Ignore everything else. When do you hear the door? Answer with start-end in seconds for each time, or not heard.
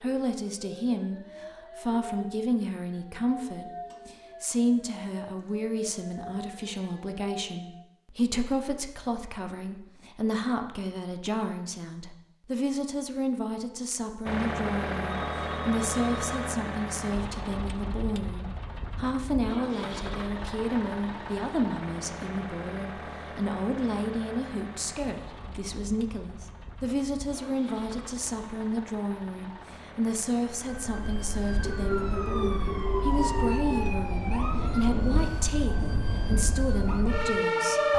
not heard.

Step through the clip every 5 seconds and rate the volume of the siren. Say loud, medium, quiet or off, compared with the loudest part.
quiet, quiet, off, off, off, off, medium, loud.